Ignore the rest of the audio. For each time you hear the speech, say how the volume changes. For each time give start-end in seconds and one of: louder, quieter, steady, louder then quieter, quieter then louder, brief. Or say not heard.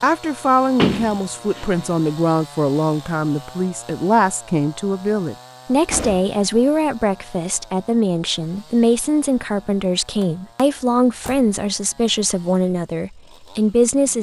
0.0-14.1 steady.